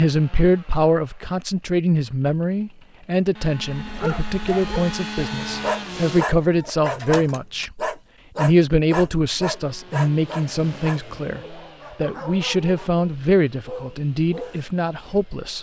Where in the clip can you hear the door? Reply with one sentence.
You can't hear the door here.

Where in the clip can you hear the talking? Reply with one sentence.
The talking can be heard from 0.0 to 15.5 s.